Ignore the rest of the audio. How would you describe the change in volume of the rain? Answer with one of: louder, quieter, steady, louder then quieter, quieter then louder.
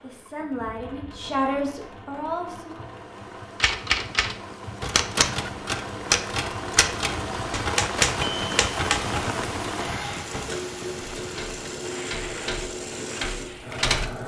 louder then quieter.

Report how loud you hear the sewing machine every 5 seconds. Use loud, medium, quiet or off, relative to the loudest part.
medium, loud, loud.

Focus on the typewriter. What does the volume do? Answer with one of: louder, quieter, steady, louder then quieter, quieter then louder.
quieter.